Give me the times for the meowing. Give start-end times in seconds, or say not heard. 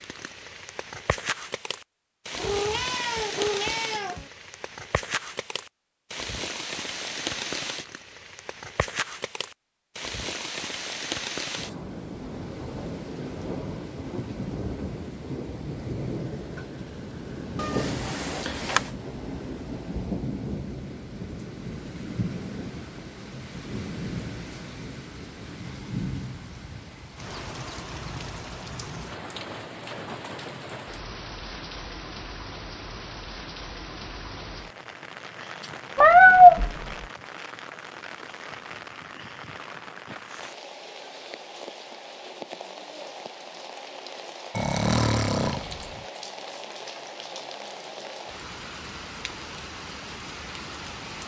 2.4-4.3, 17.6-18.8, 36.0-36.8.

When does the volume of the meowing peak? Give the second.
36 s.